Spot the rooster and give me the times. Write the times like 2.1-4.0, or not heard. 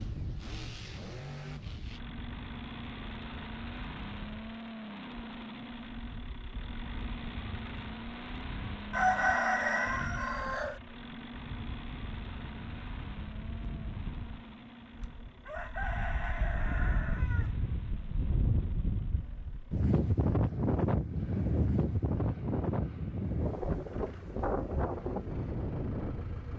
8.9-10.8, 14.9-17.6.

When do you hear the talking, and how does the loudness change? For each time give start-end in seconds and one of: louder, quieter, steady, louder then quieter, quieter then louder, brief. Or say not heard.
not heard.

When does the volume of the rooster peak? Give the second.
9 s.